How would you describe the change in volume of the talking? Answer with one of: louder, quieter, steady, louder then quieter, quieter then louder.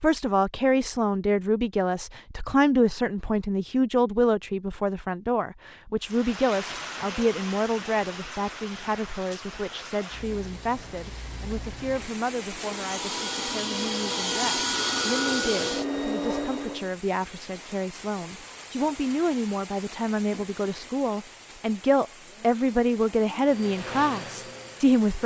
quieter then louder.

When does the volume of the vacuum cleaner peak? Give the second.
15 s.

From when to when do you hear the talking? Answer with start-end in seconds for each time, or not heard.
0.0-25.2.